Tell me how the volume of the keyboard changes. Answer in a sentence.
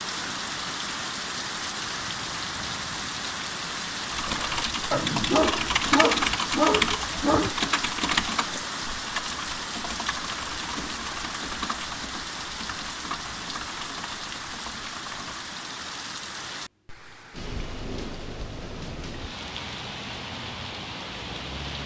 The volume of the keyboard goes down.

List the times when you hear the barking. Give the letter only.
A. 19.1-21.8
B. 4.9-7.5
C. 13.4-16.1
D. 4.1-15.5
B.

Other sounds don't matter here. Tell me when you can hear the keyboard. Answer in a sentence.
The keyboard can be heard from 4.1 to 15.5 s.